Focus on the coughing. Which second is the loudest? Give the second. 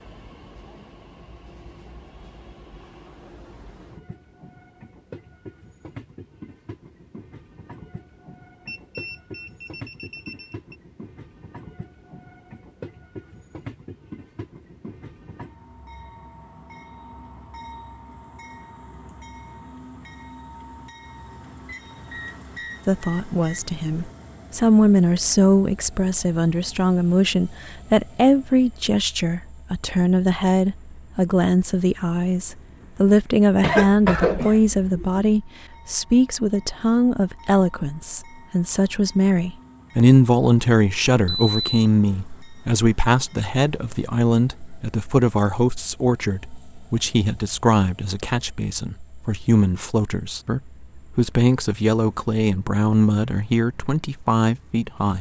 34 s.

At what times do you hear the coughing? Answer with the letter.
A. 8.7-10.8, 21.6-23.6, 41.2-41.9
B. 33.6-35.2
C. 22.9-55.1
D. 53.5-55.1
B.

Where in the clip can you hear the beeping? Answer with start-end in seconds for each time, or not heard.
8.7-10.8, 21.6-23.6, 41.2-41.9.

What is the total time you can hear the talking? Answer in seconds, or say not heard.
32 s.